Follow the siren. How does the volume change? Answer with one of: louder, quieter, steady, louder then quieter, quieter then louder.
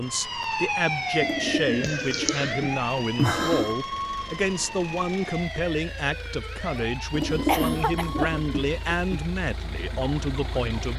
quieter.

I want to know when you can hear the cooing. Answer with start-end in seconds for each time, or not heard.
1.2-3.8, 7.1-9.2.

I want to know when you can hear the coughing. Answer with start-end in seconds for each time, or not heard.
1.8-2.5, 6.7-8.3.